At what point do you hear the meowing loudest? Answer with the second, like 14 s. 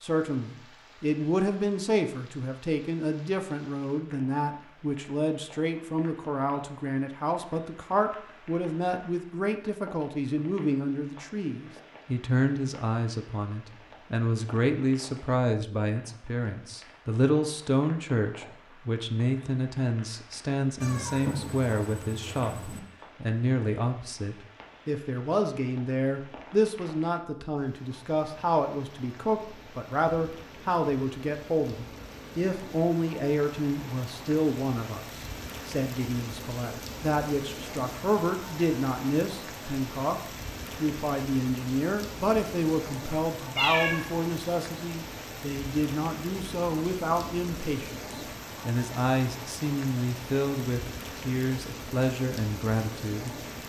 44 s.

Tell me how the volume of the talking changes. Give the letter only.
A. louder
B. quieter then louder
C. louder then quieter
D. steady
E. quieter
D.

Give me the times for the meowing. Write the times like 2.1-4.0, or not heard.
20.8-22.8, 43.5-44.0.